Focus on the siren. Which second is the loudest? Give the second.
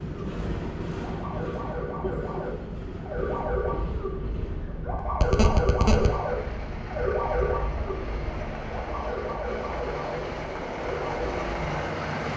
6 s.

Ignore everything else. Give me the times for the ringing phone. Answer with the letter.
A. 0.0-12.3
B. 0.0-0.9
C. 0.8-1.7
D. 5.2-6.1
D.